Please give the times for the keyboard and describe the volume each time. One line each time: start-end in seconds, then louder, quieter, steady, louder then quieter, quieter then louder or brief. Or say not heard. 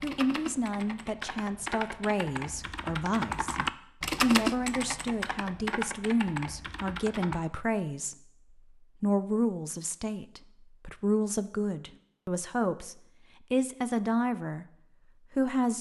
0.0-7.4 louder then quieter.